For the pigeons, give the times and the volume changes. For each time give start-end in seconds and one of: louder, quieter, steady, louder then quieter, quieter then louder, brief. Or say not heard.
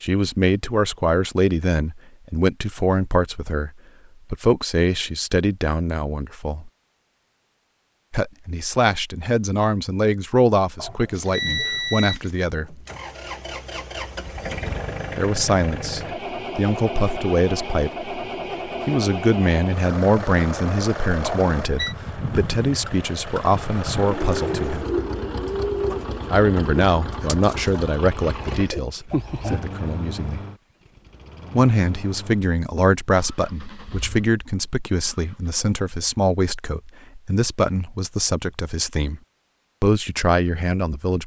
23.9-29.6 quieter then louder.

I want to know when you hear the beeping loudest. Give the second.
12 s.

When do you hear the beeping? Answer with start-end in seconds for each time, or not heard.
10.8-12.2, 21.2-21.9.